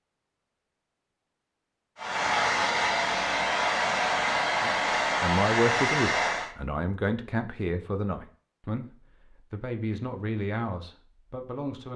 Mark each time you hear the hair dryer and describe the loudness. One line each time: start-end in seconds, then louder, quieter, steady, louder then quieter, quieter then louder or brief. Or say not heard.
1.9-6.5 steady.